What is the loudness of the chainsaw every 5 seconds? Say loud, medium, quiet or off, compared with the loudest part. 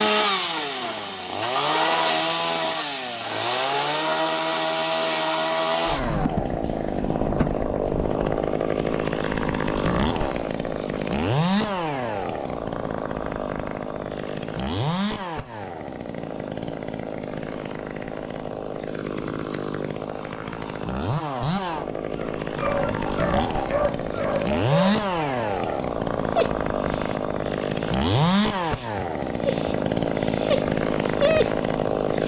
loud, loud, loud, medium, loud, loud, loud.